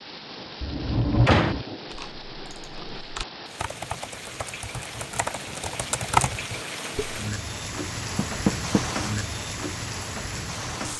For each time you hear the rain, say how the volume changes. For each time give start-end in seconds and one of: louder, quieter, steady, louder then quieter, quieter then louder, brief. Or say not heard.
0.0-10.9 louder.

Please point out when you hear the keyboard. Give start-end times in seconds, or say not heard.
1.9-7.2.